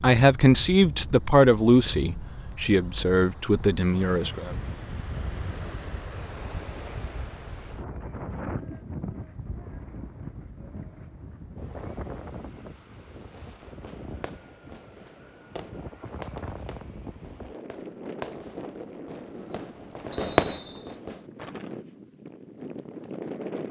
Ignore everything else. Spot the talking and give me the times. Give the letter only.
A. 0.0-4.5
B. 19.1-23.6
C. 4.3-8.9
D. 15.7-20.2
A.